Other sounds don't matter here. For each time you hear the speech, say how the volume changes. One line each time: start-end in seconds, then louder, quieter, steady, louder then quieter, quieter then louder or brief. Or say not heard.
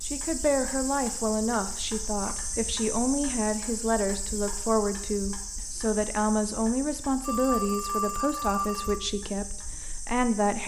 0.1-10.6 steady.